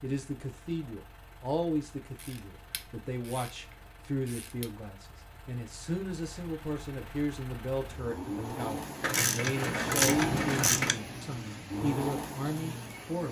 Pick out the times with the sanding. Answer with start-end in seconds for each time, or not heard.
not heard.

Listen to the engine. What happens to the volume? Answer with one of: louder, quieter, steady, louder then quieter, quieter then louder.
louder.